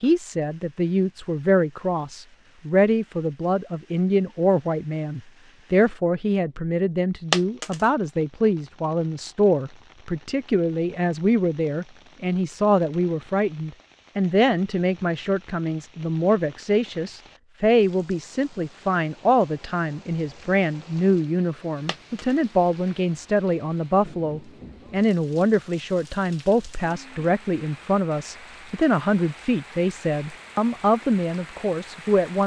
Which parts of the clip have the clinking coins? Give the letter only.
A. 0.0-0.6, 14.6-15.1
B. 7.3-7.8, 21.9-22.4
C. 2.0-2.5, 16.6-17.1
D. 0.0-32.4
B.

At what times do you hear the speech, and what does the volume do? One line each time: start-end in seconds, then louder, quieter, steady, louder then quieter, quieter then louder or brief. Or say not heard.
0.0-32.4 steady.